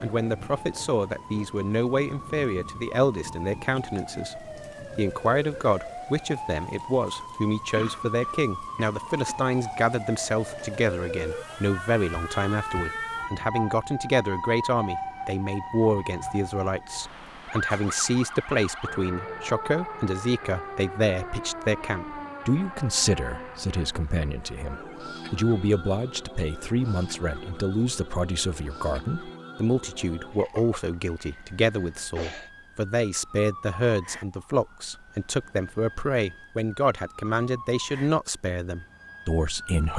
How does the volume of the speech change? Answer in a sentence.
The loudness of the speech stays about the same.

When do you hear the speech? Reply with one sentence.
You can hear the speech from 0.0 to 39.9 s.